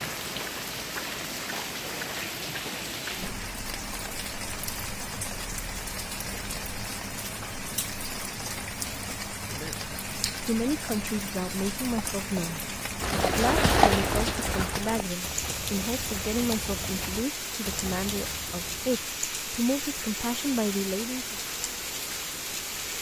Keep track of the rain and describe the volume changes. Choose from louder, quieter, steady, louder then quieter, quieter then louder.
steady.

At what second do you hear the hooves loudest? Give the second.
14 s.